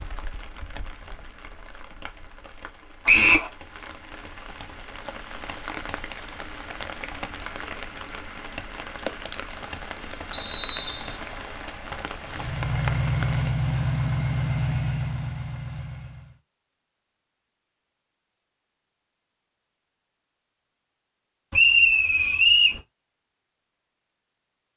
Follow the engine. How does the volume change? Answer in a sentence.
The loudness of the engine goes down.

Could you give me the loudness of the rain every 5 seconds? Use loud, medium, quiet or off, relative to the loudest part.
medium, loud, loud, off, off.